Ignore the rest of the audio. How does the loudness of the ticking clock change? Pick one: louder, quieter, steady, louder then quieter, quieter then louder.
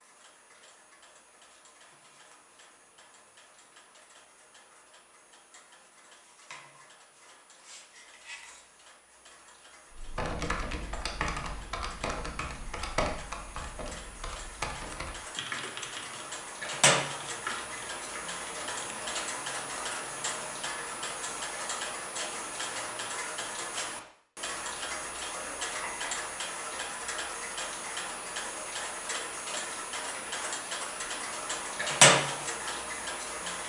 louder.